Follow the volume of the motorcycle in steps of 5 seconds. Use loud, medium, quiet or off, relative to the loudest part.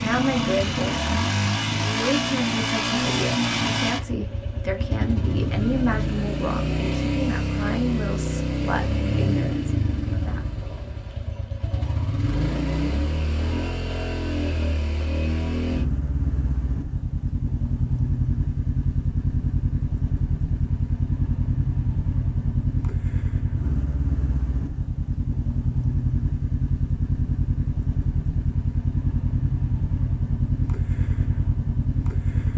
loud, loud, medium, loud, loud, loud, loud.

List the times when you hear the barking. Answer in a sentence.
The barking can't be heard in this clip.